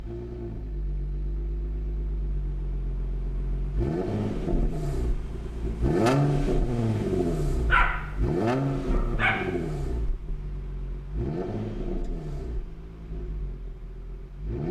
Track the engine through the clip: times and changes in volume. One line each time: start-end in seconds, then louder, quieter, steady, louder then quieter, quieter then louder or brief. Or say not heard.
0.0-14.6 louder then quieter.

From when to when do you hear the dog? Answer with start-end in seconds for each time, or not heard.
7.7-9.5.